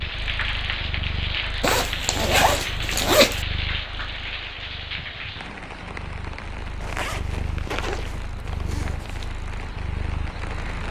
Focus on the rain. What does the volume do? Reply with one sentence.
The volume of the rain goes down.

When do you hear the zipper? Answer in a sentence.
You can hear the zipper from 1.6 to 3.5 s and from 6.8 to 9.3 s.